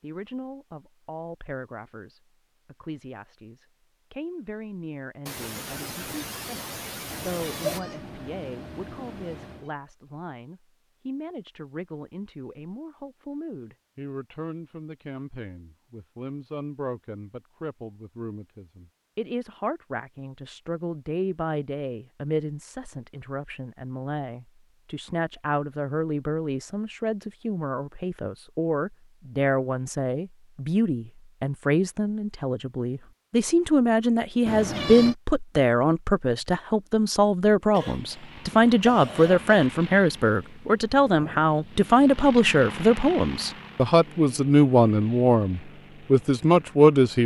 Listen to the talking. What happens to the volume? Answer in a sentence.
The volume of the talking goes up.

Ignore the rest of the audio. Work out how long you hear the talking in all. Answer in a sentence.
The talking can be heard for 47 seconds in total.